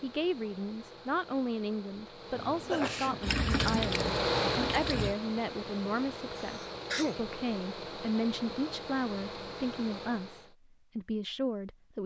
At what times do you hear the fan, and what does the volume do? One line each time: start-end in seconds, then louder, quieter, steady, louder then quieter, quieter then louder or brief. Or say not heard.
0.0-10.6 louder then quieter.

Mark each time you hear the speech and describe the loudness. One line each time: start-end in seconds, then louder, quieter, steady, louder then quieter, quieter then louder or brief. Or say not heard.
0.0-12.0 steady.